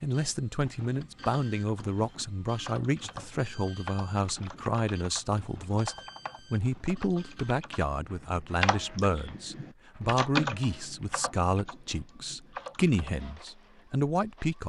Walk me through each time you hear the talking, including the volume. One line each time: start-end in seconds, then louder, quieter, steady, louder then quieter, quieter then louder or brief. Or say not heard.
0.0-14.6 steady.